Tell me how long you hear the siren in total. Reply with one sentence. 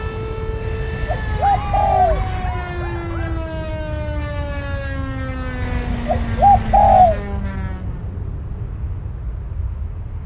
You can hear the siren for 8 seconds altogether.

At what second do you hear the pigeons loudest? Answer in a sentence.
The volume of the pigeons peaks at 7 seconds.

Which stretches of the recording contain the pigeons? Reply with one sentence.
The pigeons can be heard from 0.6 to 2.5 s and from 5.6 to 7.2 s.